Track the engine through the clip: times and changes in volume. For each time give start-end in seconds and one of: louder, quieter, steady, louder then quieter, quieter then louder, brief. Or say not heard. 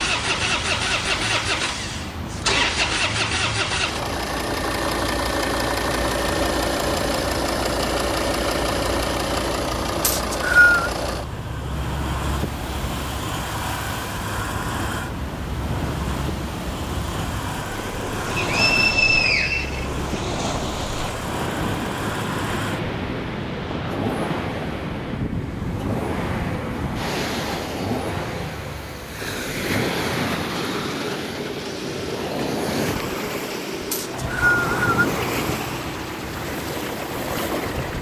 0.0-37.9 quieter.